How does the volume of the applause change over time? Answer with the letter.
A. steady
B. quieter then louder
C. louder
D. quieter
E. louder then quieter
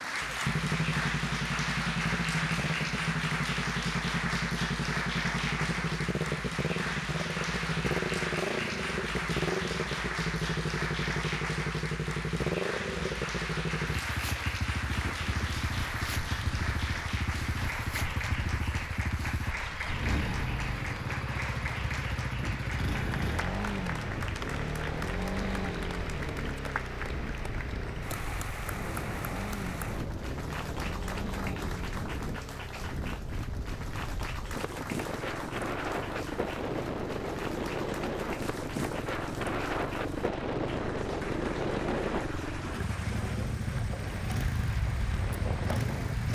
D.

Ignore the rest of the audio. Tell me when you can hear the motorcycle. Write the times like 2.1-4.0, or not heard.
0.0-46.3.